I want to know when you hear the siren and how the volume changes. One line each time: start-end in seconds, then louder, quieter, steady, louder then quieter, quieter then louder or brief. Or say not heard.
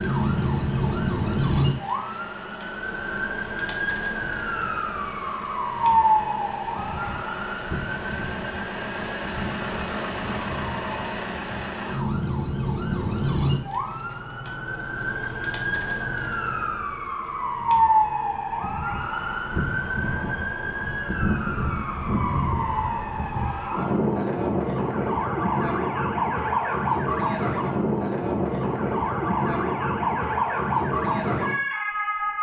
0.0-32.3 quieter then louder.